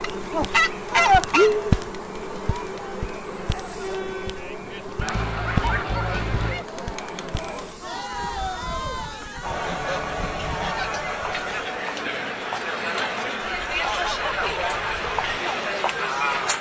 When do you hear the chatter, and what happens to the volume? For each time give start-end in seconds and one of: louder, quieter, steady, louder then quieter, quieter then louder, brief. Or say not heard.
0.0-16.5 louder.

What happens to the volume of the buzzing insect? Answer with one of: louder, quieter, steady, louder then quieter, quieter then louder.
quieter.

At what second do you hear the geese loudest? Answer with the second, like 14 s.
1 s.